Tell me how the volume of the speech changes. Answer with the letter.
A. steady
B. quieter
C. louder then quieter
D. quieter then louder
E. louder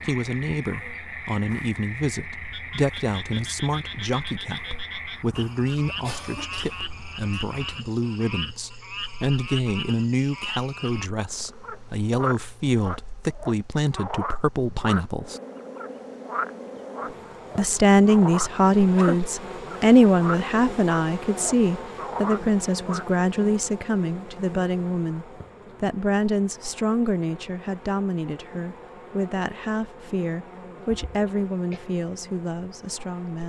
C.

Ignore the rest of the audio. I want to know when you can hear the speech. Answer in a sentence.
You can hear the speech from 0.0 to 15.4 s and from 17.6 to 33.4 s.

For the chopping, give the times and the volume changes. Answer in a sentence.
The chopping can't be heard in this clip.